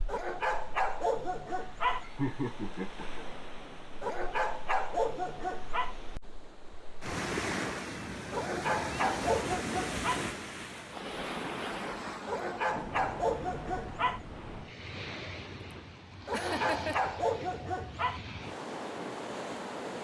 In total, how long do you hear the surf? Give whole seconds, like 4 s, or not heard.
20 s.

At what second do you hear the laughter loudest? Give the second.
2 s.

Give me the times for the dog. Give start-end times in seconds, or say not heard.
0.1-2.0, 4.0-6.0, 8.3-10.2, 12.2-14.2, 16.2-18.2.